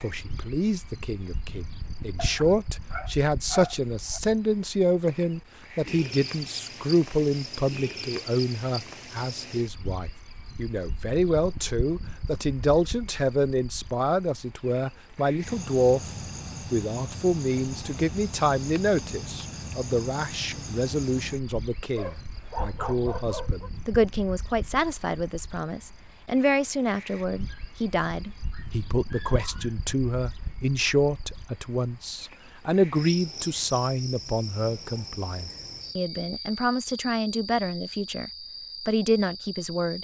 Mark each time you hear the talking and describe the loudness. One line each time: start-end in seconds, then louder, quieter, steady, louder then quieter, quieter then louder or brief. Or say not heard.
0.0-16.1 steady
16.7-39.9 steady.